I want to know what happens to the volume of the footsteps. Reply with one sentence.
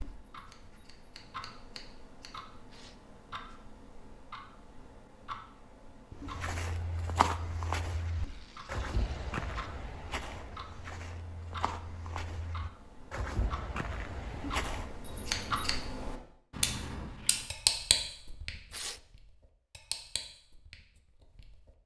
The loudness of the footsteps goes down, then up.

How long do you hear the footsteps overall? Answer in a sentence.
The footsteps can be heard for 9 seconds in total.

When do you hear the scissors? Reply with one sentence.
The scissors can be heard from 0.3 to 2.4 s and from 15.0 to 15.8 s.